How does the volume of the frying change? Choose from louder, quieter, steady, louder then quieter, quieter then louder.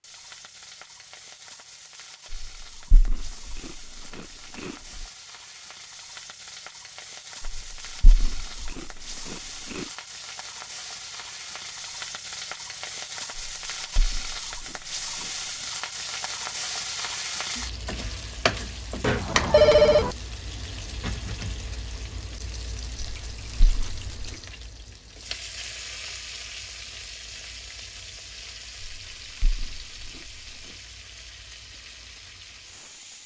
louder then quieter.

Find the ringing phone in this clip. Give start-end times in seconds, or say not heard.
19.0-20.1.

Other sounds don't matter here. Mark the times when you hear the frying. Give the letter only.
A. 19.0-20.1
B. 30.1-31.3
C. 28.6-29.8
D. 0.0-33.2
D.